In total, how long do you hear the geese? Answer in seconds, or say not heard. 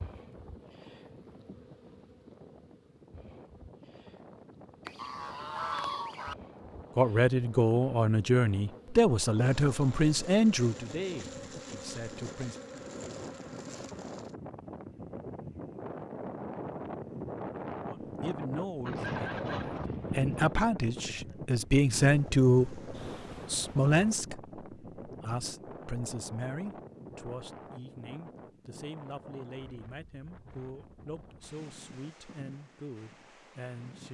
3 s.